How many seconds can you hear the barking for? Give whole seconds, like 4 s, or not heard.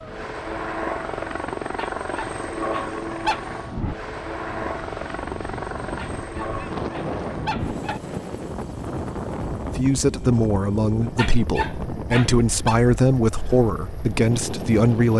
5 s.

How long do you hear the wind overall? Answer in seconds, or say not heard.
15 s.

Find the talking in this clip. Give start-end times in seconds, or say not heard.
9.8-15.1.